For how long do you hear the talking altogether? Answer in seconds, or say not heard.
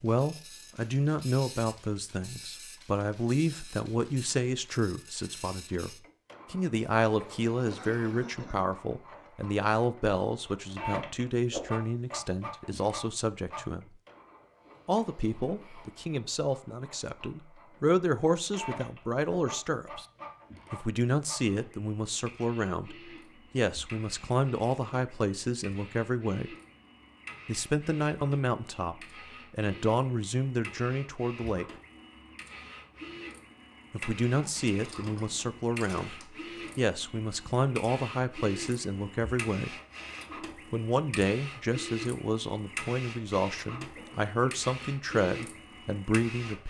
41 s.